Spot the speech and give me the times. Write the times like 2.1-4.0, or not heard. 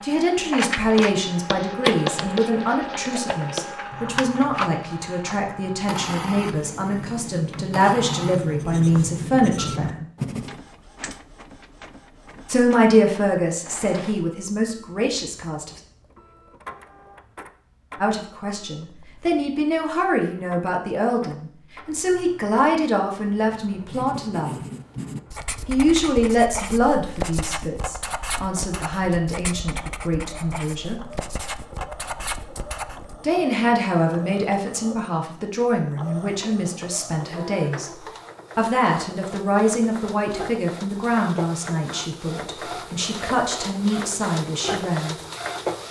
0.0-10.1, 12.5-15.8, 18.0-24.6, 25.6-31.0, 33.2-45.1.